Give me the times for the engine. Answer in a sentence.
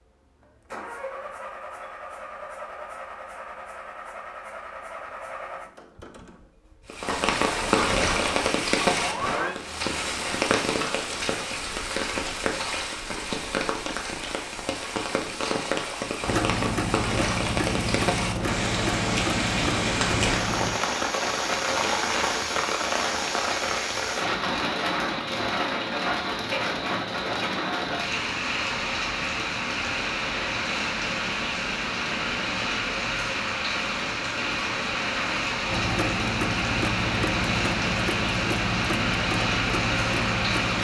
The engine can be heard from 0.0 to 9.6 s, from 16.2 to 20.8 s and from 35.6 to 40.7 s.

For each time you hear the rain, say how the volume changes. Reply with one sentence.
The rain can be heard from 6.8 to 40.7 s, at a steady volume.